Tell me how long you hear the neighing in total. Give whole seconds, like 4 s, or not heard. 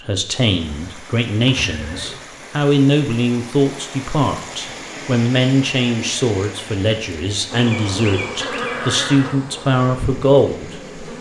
2 s.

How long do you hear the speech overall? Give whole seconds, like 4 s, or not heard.
11 s.